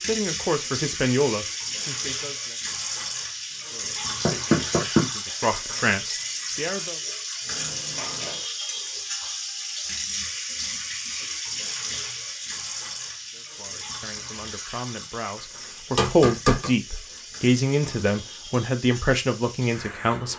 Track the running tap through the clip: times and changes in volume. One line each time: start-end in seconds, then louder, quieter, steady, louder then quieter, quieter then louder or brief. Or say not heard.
0.0-20.3 quieter.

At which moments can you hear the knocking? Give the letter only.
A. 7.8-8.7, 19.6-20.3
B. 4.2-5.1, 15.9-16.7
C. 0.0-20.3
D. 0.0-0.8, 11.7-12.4
B.